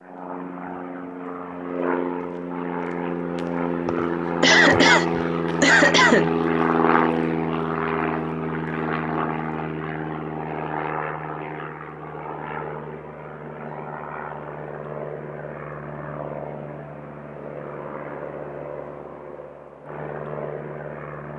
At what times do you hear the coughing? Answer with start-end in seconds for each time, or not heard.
3.9-6.3.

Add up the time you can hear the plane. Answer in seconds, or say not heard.
21 s.